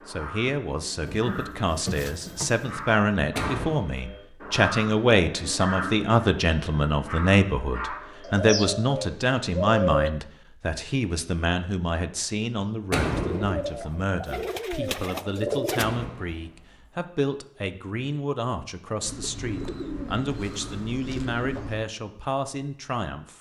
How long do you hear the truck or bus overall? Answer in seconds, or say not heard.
not heard.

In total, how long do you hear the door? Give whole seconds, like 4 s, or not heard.
3 s.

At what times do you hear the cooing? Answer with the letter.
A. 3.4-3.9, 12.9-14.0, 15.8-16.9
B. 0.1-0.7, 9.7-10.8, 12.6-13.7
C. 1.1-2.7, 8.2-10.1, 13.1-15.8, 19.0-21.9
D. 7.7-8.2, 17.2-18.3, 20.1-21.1
C.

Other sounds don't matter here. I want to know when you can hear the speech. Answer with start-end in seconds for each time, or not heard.
0.1-23.3.